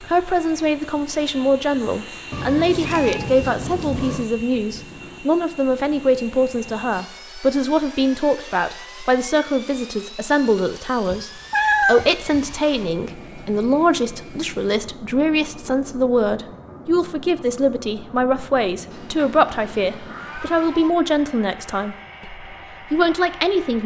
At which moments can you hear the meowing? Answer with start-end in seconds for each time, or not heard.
2.3-4.2, 11.1-12.6, 18.9-20.9.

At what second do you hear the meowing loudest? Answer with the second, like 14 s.
12 s.